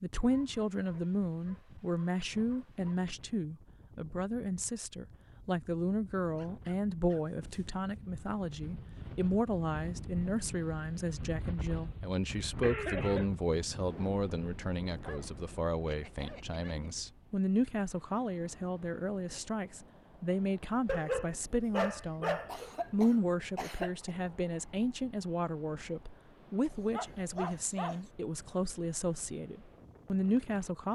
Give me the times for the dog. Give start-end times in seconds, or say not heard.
0.3-3.0, 6.3-7.8, 14.9-16.9, 20.9-22.7, 26.9-28.0.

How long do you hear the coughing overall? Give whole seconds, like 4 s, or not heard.
2 s.